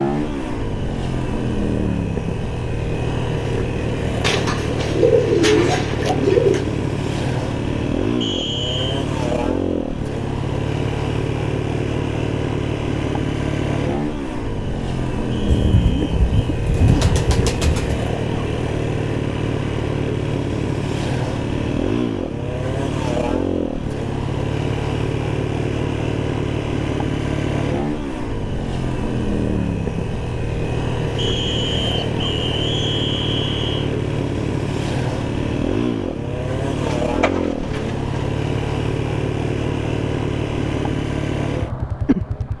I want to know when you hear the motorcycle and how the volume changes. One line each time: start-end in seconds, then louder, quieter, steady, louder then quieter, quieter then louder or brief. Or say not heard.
0.0-42.5 steady.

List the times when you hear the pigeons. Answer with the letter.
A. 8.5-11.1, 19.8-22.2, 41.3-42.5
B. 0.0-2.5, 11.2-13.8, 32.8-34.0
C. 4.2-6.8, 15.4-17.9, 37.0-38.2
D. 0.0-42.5
C.